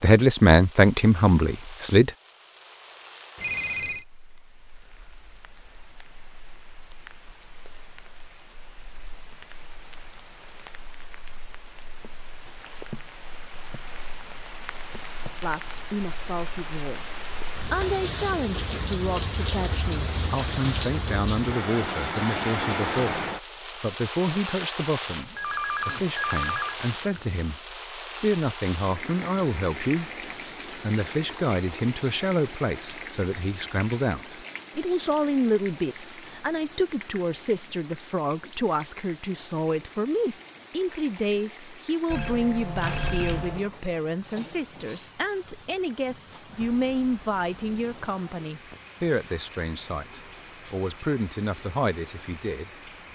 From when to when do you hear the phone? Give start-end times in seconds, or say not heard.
3.4-4.0, 25.4-27.4, 42.1-43.6.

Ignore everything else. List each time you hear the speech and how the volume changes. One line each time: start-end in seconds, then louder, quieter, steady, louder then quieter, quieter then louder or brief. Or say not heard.
0.0-2.1 brief
15.4-52.9 steady.